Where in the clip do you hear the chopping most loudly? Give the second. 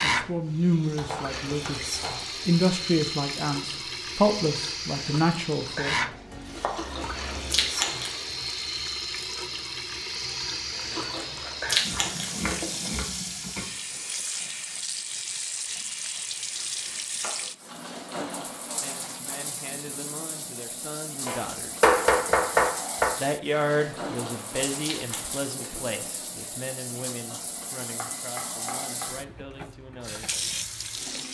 22 s.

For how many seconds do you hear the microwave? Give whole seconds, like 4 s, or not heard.
not heard.